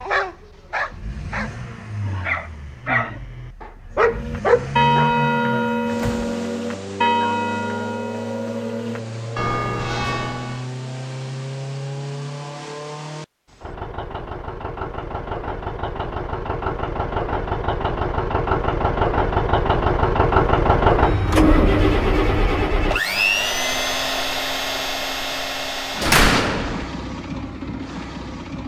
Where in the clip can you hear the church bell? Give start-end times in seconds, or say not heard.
4.0-10.7.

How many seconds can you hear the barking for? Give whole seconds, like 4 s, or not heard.
5 s.